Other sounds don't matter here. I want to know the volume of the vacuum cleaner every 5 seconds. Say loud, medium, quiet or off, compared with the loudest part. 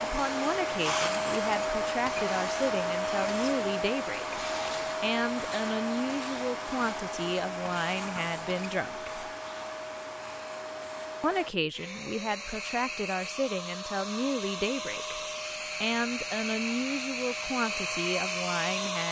loud, medium, medium, loud.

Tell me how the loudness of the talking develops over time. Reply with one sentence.
The loudness of the talking stays about the same.